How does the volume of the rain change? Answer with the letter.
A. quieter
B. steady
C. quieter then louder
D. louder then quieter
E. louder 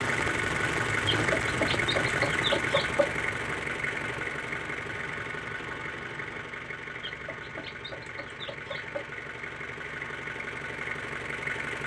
A.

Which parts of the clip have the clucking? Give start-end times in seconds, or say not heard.
1.1-3.0, 7.0-9.1.